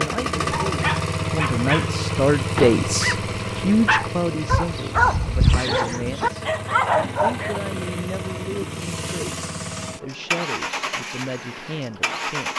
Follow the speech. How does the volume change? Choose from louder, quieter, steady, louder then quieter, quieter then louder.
quieter.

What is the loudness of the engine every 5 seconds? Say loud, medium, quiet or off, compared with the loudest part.
loud, medium, loud.